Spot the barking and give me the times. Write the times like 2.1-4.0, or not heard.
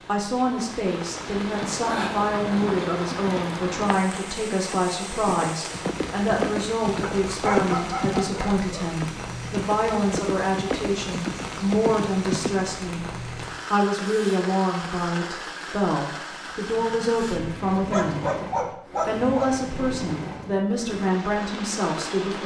7.0-8.9, 17.9-19.6.